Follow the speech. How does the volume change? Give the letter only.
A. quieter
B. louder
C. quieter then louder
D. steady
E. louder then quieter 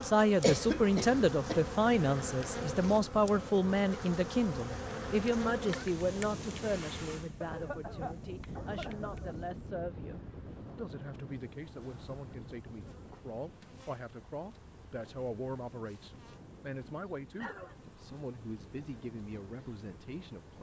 A.